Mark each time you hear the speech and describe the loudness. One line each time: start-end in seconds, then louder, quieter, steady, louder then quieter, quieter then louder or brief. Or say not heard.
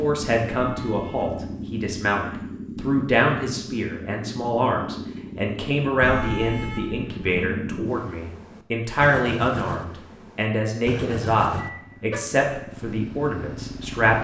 0.0-14.1 steady.